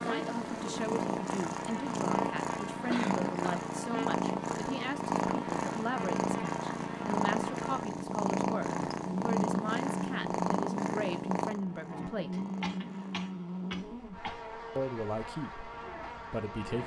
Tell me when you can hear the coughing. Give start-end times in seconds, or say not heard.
2.9-3.6, 12.3-14.4.